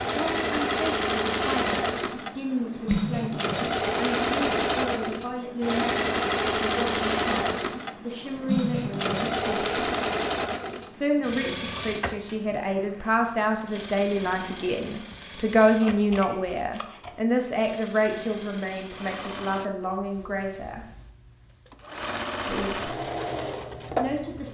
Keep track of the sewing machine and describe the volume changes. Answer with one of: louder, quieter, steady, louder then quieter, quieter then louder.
quieter then louder.